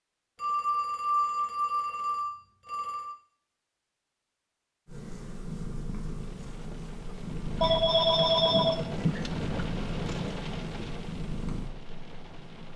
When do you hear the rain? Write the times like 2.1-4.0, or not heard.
6.0-12.7.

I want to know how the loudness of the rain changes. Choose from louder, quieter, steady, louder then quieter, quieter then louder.
louder then quieter.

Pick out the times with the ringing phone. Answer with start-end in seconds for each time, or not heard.
0.3-3.1, 7.6-9.2.